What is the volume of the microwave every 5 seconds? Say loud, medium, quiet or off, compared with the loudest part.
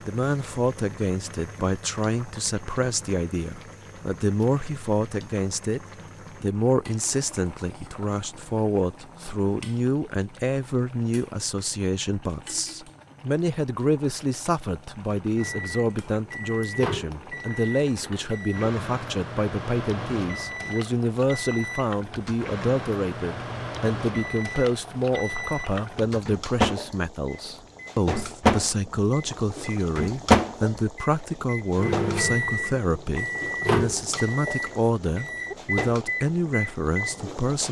off, off, off, medium, medium, loud, loud, medium.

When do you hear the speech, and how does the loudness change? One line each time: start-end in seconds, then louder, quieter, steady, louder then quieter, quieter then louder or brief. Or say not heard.
0.1-5.8 steady
6.4-37.6 steady.